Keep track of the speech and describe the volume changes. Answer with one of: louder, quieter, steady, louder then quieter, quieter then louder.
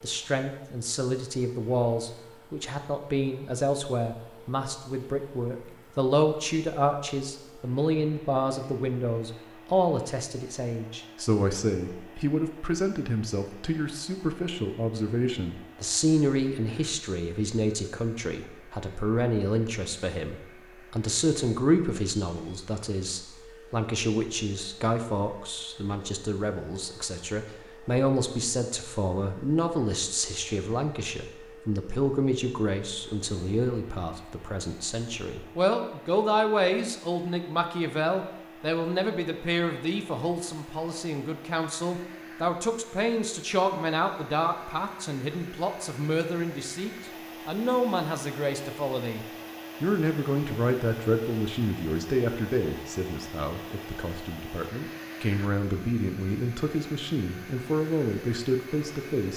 steady.